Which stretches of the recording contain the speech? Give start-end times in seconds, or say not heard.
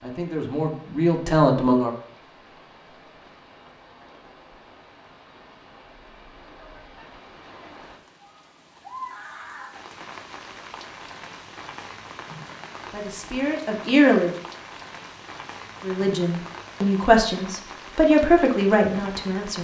0.0-1.9, 12.9-14.3, 15.8-19.5.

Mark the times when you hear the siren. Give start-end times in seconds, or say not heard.
not heard.